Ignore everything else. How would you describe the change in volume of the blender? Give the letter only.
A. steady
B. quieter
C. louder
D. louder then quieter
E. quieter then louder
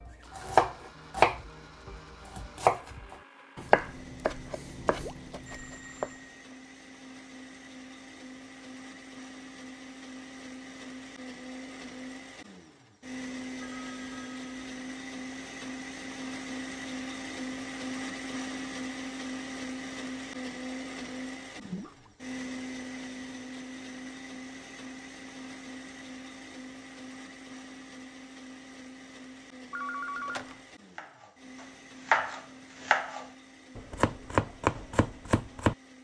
D.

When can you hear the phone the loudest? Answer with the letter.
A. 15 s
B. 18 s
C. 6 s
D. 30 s
D.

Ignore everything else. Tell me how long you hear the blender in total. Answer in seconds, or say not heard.
36 s.